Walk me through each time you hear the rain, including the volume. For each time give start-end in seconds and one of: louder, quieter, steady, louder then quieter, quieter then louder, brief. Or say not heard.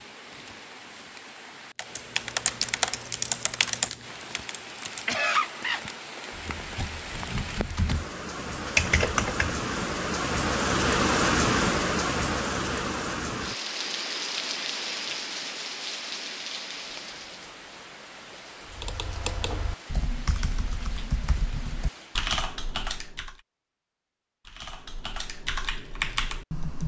0.0-22.4 louder then quieter.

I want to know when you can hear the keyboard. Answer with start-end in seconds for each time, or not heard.
1.8-9.6, 18.7-23.4, 24.4-26.8.